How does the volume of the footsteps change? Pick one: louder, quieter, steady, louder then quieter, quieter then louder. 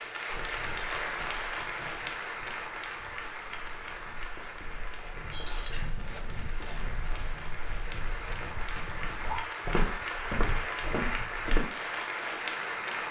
louder.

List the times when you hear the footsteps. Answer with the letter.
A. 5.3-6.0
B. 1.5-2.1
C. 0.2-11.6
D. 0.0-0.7
C.